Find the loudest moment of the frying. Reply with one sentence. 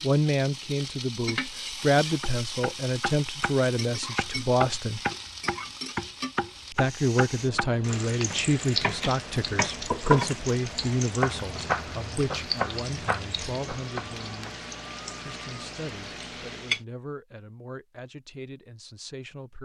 The volume of the frying peaks at 10 seconds.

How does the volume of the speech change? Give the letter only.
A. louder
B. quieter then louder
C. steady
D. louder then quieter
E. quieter
E.